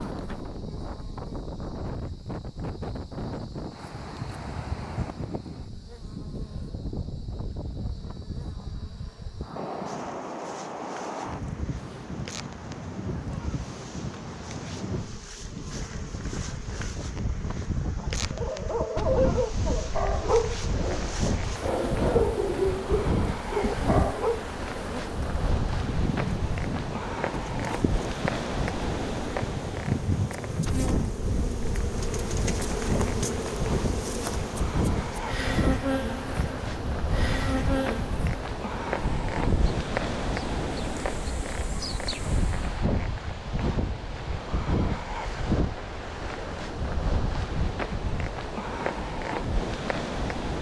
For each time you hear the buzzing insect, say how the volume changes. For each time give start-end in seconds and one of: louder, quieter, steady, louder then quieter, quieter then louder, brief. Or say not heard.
0.0-42.6 louder.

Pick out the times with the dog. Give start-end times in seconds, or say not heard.
18.0-24.4.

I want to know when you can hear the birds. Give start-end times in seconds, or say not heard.
not heard.